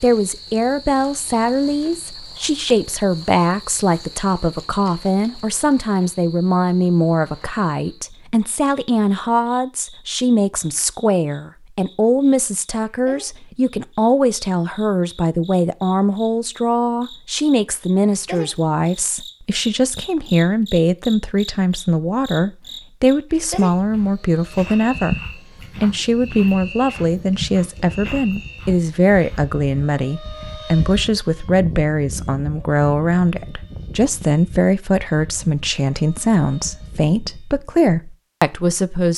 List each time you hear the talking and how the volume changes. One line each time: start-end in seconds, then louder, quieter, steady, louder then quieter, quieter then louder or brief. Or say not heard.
0.0-39.1 steady.